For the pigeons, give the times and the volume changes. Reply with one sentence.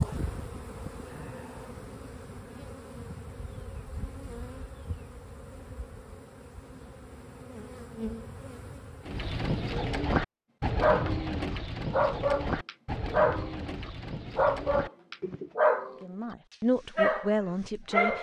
The pigeons can be heard from 9.1 to 15.6 s, getting quieter.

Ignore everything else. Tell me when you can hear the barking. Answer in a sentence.
The barking can be heard from 10.8 to 11.2 s, from 11.9 to 16.0 s and from 16.9 to 18.1 s.